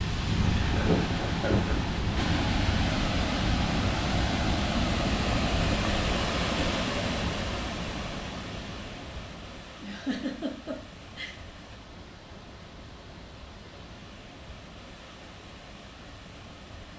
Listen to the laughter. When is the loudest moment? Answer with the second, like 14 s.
1 s.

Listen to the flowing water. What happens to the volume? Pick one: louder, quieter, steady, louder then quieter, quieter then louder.
quieter.